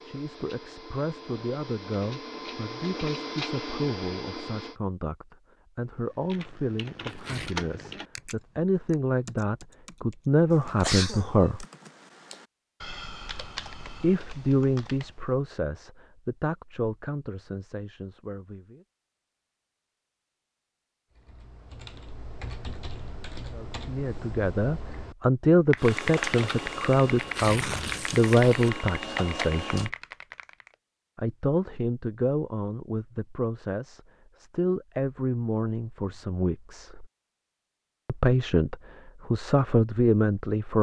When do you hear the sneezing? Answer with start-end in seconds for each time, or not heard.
10.7-11.3.